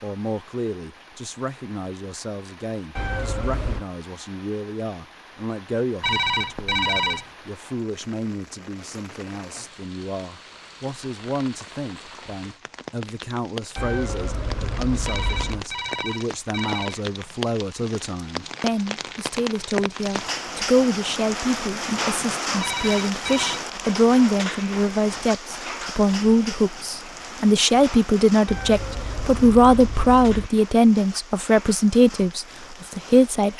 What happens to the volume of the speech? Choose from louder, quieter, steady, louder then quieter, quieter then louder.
louder.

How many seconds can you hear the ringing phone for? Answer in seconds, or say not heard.
4 s.